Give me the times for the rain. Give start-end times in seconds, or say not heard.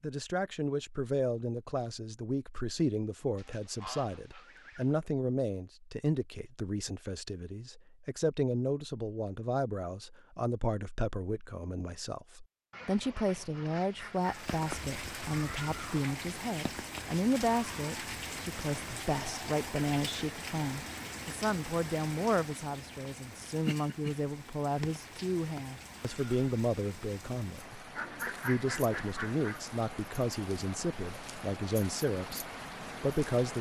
14.2-33.5.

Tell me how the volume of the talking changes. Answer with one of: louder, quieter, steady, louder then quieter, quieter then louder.
steady.